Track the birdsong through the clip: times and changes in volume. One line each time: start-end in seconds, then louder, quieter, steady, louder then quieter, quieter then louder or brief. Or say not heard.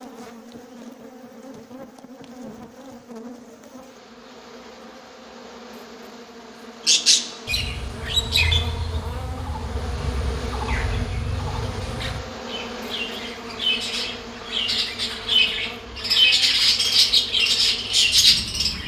6.8-18.8 quieter then louder.